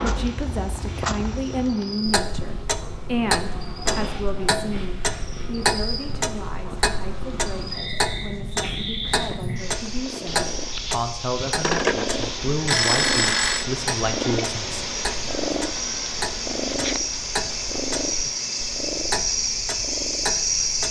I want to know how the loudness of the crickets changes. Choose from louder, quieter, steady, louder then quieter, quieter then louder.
louder.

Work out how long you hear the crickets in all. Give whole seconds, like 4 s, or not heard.
21 s.